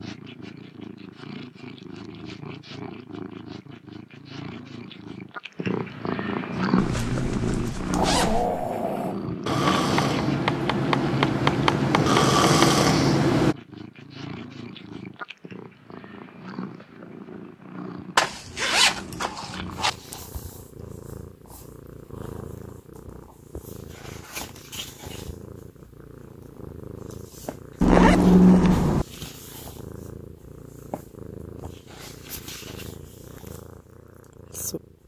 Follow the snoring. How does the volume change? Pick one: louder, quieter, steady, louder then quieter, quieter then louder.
louder.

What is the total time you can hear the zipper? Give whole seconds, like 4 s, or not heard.
5 s.